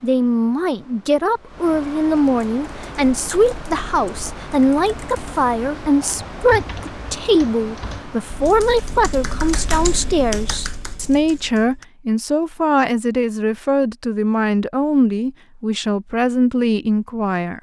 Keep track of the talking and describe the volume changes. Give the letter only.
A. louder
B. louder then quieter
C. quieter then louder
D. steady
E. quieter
D.